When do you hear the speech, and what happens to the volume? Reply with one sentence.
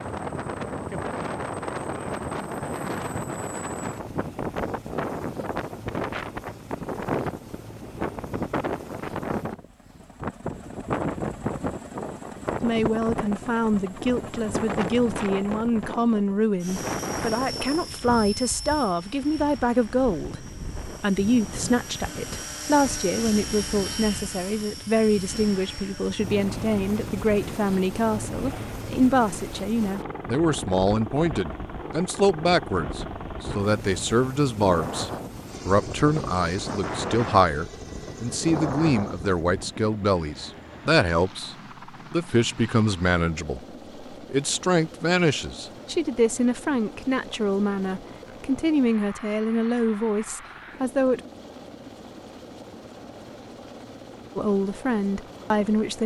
The speech can be heard from 12.6 to 51.2 s, at a steady volume; and briefly from 54.4 to 56.0 s.